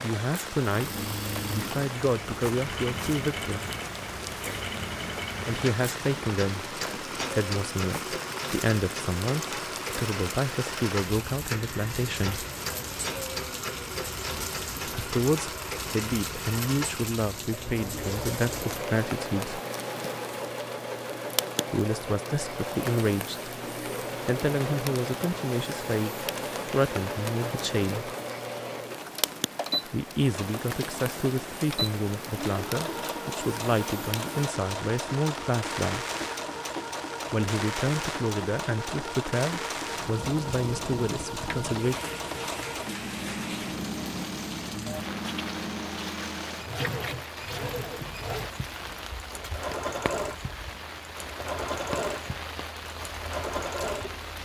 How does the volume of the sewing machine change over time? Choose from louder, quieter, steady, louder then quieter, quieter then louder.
steady.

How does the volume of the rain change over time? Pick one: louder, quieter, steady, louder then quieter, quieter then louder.
steady.